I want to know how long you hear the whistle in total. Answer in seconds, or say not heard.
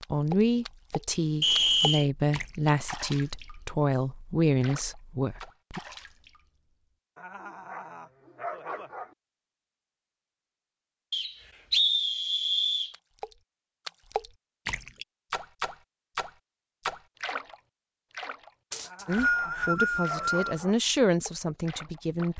4 s.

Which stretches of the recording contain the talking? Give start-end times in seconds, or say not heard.
0.1-5.8, 19.1-22.3.